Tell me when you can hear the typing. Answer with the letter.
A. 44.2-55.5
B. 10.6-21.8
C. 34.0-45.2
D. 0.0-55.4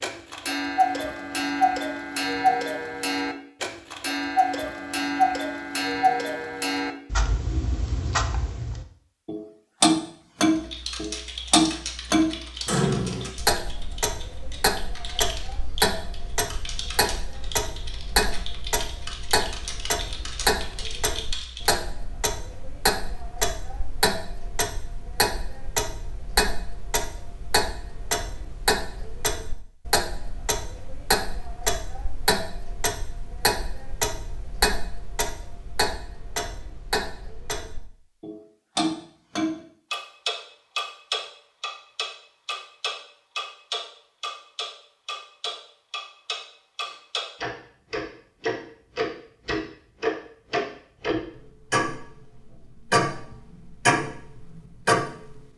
B.